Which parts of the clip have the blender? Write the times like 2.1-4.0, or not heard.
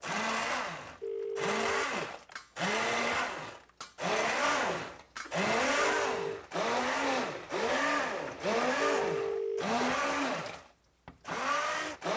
0.0-12.1.